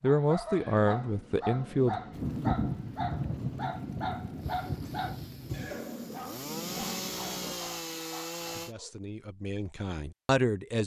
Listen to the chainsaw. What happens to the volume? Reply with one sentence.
The volume of the chainsaw goes up.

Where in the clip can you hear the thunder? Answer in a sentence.
You can hear the thunder from 2.1 to 5.8 s.